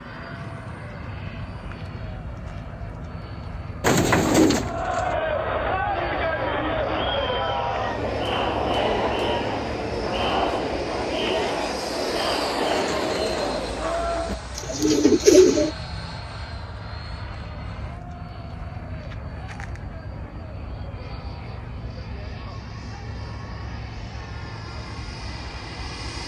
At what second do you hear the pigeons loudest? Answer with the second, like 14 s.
15 s.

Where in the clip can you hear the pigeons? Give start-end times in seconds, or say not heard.
3.8-5.2, 12.7-15.7.